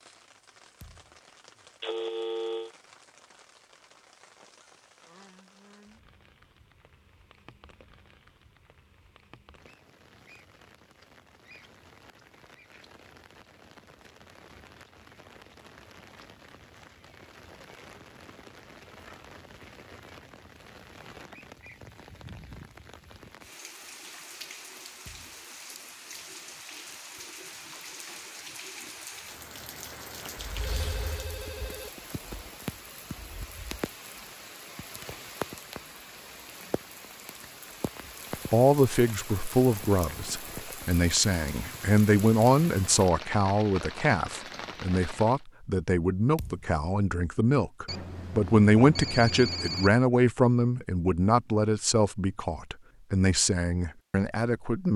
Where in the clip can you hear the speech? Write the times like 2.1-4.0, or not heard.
38.5-54.9.